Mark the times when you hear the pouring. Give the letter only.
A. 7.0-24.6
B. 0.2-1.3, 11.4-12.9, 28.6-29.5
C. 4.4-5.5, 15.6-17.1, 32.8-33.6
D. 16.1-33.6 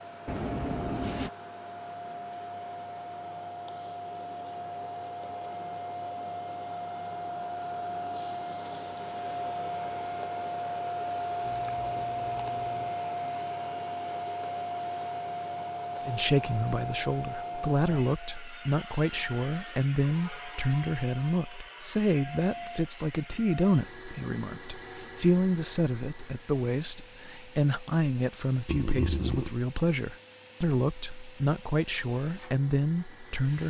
B.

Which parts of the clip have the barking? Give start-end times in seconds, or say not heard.
not heard.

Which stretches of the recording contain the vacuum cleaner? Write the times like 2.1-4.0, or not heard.
0.0-33.6.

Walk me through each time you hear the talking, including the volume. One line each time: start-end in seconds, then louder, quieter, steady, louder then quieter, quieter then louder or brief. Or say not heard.
16.1-33.6 steady.